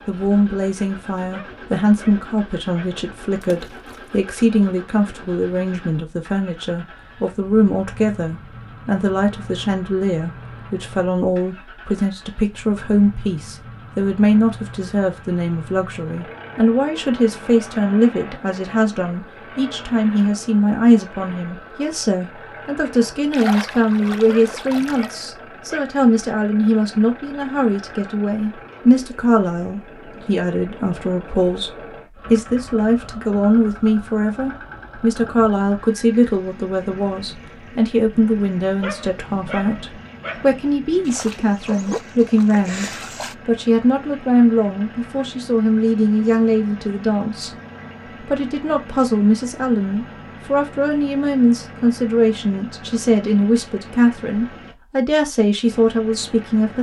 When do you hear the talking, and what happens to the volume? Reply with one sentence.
The talking can be heard from 0.1 to 47.5 s, at a steady volume; and from 48.2 to 56.7 s, at a steady volume.